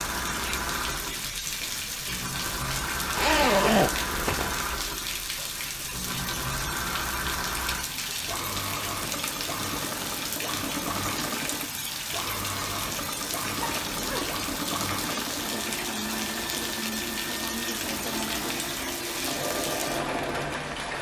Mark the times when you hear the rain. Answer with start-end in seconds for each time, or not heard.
0.0-20.9.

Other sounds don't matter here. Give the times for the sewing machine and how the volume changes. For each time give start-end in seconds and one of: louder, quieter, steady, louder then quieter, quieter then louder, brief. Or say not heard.
0.0-20.6 steady.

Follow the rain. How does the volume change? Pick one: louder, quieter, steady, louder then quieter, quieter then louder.
steady.